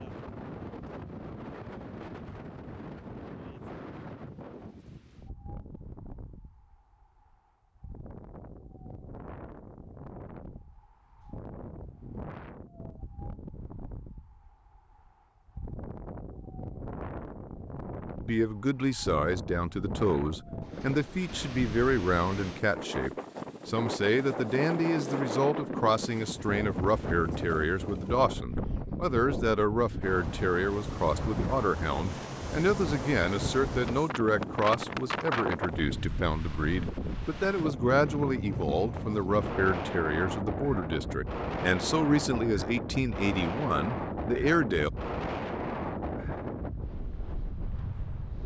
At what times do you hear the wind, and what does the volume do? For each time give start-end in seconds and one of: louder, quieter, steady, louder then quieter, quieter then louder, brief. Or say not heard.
0.0-48.4 louder.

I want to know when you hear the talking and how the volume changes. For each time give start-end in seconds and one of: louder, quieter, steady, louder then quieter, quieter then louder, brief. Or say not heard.
18.2-44.9 steady.